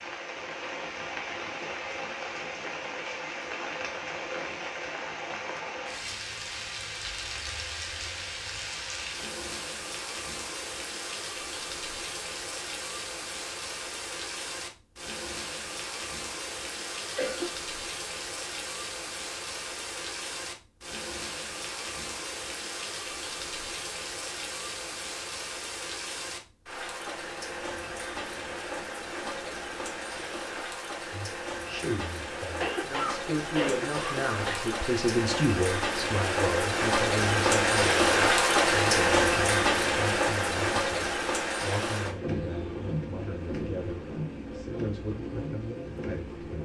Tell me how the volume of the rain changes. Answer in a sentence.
The volume of the rain goes up.